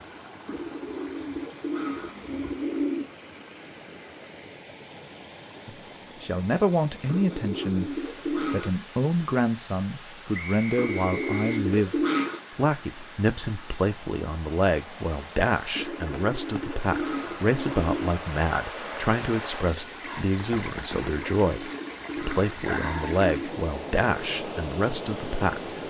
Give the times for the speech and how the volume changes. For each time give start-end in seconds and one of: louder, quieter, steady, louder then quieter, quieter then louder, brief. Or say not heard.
5.7-25.8 steady.